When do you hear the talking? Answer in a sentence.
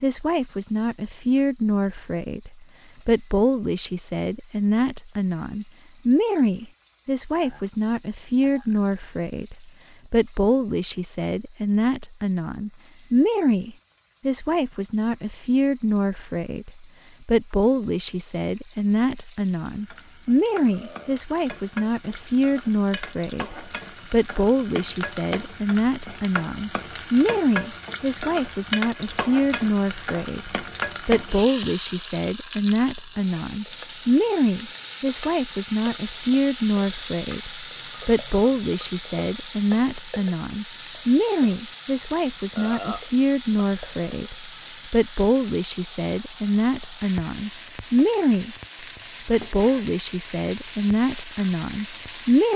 The talking can be heard from 0.0 to 48.5 s and from 49.2 to 52.5 s.